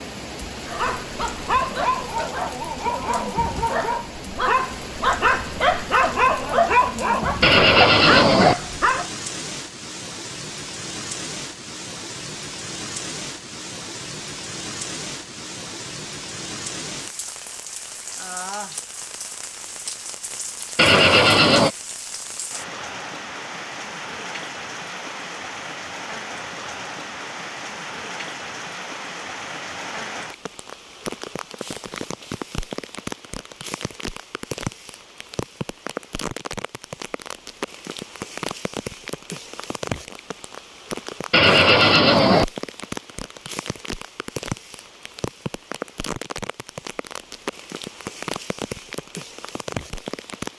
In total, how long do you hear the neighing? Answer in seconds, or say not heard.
3 s.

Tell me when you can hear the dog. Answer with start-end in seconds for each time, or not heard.
0.7-9.1.